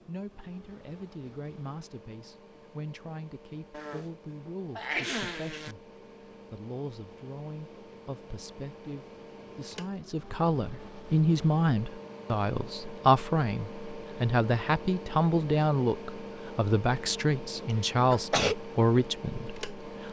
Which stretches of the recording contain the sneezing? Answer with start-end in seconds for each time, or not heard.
3.7-5.8, 17.7-18.6.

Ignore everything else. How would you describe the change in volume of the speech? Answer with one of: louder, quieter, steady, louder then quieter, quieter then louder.
louder.